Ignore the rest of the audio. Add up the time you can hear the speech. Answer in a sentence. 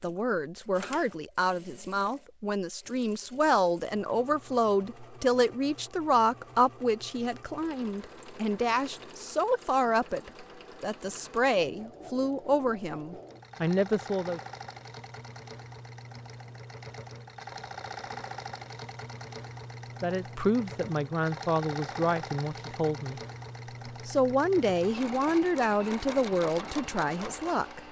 The speech can be heard for 21 seconds in total.